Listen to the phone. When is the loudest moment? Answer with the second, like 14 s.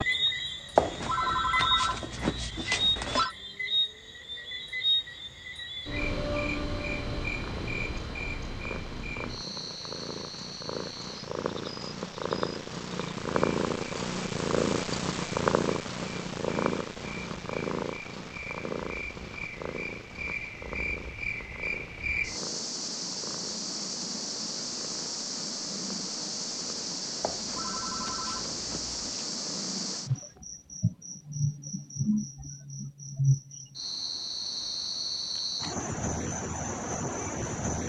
1 s.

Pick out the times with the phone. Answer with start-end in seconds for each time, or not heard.
0.8-3.4, 27.2-29.2.